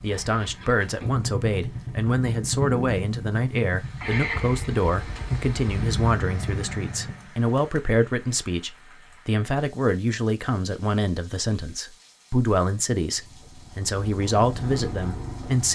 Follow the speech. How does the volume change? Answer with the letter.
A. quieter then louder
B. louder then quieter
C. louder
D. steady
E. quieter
D.